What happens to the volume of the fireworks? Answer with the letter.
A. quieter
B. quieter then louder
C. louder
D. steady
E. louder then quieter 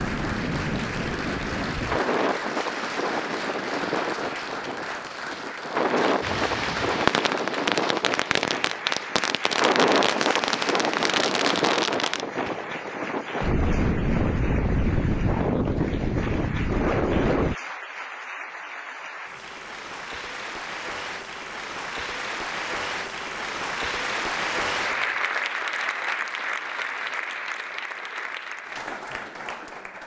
D.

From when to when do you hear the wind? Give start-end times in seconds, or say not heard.
0.0-17.6.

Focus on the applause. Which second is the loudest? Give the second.
25 s.